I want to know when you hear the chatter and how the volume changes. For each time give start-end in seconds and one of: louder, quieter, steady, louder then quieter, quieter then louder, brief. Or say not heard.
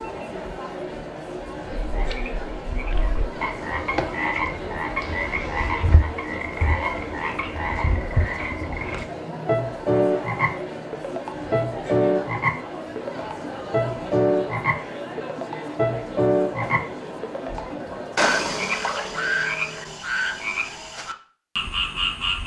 0.0-18.8 steady.